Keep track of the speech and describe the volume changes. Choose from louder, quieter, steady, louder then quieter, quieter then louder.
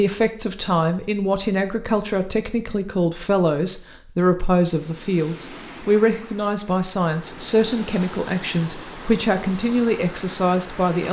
steady.